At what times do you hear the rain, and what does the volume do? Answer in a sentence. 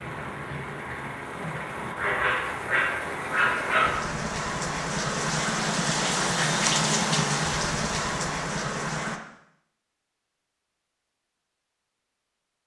The rain can be heard from 0.0 to 9.2 s, getting louder.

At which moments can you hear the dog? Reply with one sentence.
The dog can be heard from 1.4 to 3.9 s.